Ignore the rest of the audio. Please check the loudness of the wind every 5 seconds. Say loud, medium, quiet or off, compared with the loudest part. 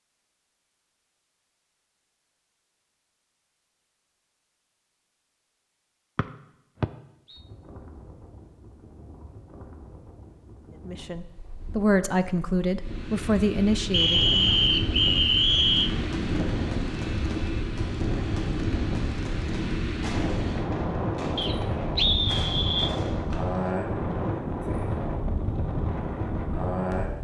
off, quiet, medium, loud, loud, loud.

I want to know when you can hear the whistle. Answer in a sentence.
You can hear the whistle from 6.2 to 7.4 s, from 13.9 to 15.9 s and from 21.4 to 22.9 s.